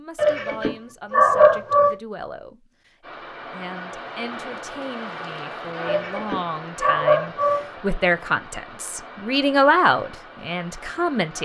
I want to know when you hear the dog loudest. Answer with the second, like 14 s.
1 s.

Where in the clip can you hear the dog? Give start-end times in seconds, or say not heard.
0.1-1.9, 5.8-7.7.